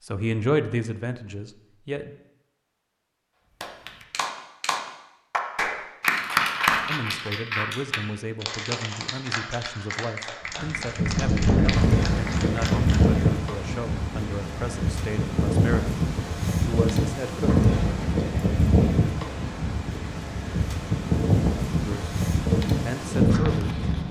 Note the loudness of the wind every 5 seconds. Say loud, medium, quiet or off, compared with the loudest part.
off, off, loud, loud, loud.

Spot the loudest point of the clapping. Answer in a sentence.
The loudest moment of the clapping is at 7 seconds.